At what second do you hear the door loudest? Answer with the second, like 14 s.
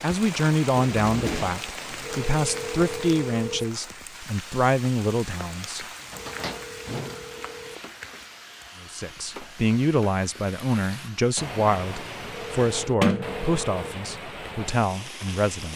13 s.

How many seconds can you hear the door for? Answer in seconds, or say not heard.
3 s.